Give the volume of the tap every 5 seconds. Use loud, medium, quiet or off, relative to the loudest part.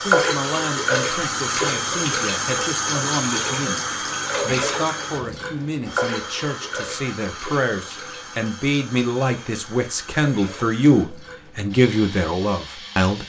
loud, medium, quiet.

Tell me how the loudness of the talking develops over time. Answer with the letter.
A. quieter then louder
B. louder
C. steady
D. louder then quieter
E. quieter
B.